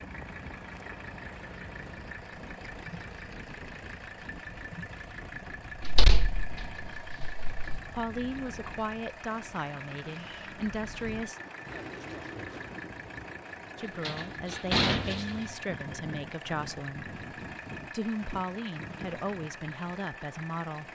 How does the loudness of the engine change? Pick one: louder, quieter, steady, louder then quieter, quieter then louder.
steady.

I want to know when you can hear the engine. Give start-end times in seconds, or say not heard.
0.0-20.9.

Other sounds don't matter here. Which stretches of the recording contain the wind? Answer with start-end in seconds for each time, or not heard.
0.0-20.9.